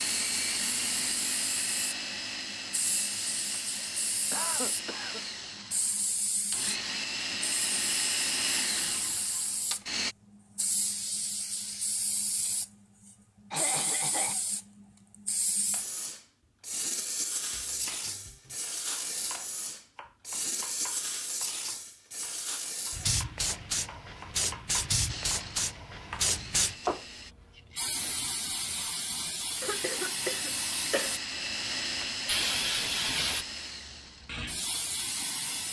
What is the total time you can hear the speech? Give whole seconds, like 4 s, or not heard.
not heard.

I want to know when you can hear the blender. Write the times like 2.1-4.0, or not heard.
0.0-10.2, 25.1-27.4, 29.4-35.6.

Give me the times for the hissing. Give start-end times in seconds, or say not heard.
0.0-35.6.